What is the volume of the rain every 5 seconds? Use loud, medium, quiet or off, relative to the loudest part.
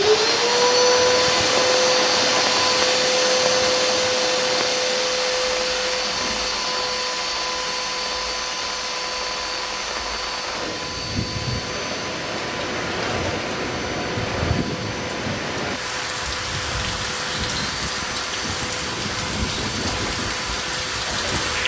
loud, medium, loud, loud, loud.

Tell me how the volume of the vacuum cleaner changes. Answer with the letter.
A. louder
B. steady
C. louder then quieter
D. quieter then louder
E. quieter
E.